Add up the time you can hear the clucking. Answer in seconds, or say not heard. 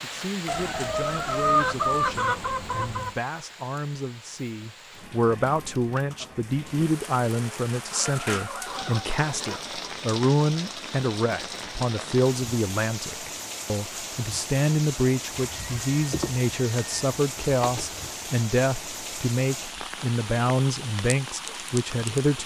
7 s.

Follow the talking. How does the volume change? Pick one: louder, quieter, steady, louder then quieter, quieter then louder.
louder.